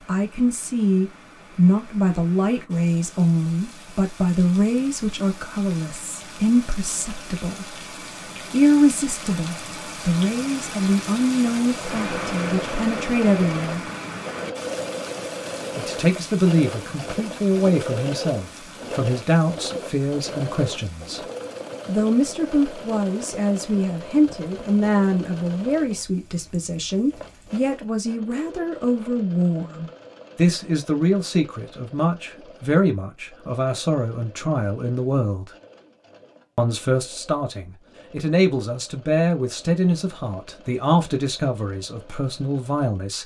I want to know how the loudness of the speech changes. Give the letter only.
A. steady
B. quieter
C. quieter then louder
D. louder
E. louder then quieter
A.